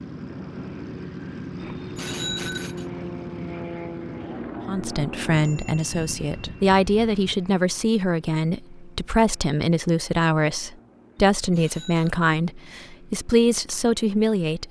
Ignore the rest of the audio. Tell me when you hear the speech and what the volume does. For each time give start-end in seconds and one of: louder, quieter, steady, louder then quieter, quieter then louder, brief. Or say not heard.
4.7-14.6 steady.